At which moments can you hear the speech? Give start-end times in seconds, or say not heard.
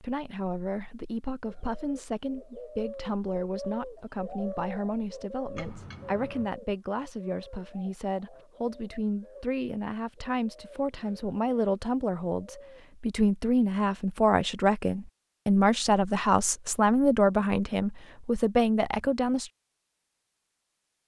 0.0-19.5.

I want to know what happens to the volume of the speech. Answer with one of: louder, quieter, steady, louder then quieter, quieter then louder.
louder.